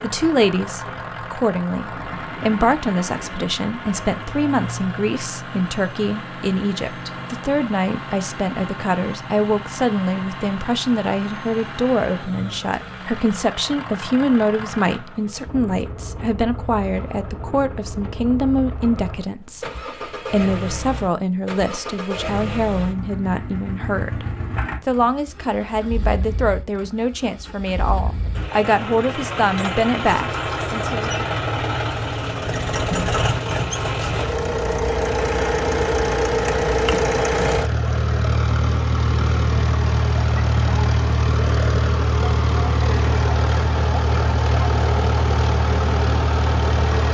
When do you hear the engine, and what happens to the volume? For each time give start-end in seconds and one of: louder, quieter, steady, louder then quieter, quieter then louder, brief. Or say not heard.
0.0-47.0 louder.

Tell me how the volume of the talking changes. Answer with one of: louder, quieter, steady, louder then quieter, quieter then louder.
steady.